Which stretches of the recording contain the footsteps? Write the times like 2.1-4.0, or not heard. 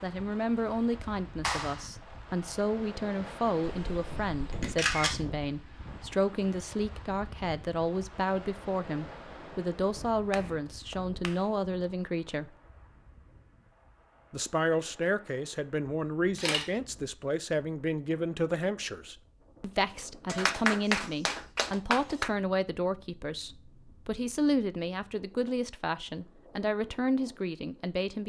not heard.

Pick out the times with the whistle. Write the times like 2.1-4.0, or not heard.
not heard.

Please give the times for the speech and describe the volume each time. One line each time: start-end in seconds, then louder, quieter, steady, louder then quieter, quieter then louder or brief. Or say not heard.
0.0-12.5 steady
14.3-28.2 steady.